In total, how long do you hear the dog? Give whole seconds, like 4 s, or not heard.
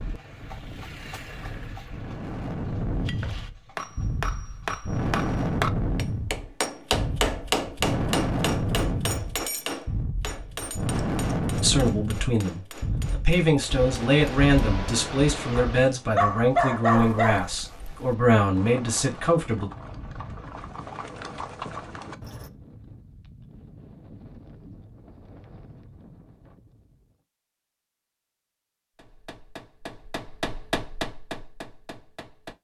2 s.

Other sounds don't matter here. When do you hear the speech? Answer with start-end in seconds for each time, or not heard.
11.6-19.7.